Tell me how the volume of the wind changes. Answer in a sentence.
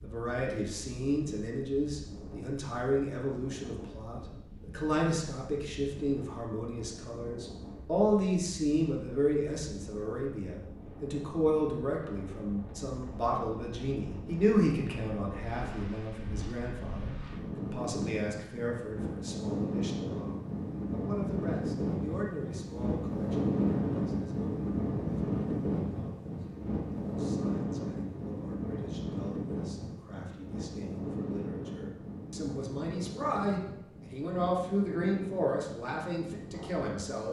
The loudness of the wind goes up, then down.